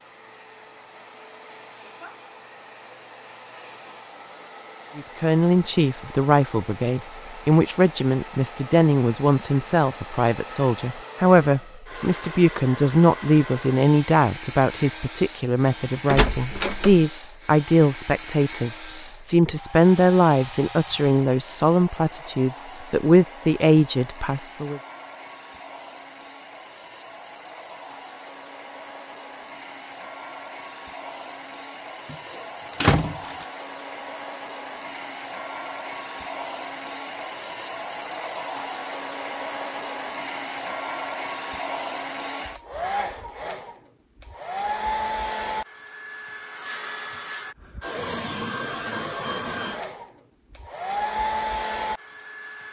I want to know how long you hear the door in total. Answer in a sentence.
You can hear the door for 2 seconds altogether.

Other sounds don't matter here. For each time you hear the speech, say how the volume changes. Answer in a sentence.
You can hear the speech from 5.0 to 24.8 s, at a steady volume.